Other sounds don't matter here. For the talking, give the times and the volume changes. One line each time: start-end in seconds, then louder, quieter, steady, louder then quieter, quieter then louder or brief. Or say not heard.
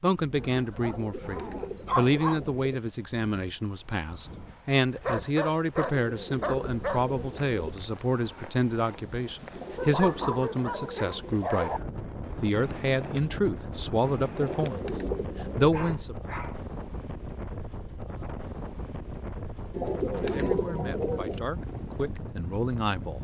0.0-11.8 steady
12.4-14.8 brief
15.6-16.1 brief
20.1-23.1 brief.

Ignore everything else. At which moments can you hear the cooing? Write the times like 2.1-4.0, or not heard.
0.8-2.8, 5.8-7.5, 9.5-11.4, 14.3-15.9, 19.7-21.4.